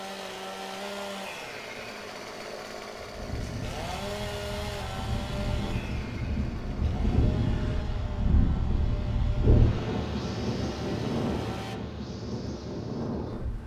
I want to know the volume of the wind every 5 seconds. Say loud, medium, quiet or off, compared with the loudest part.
medium, loud, loud.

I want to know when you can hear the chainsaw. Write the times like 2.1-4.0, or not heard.
0.0-11.8.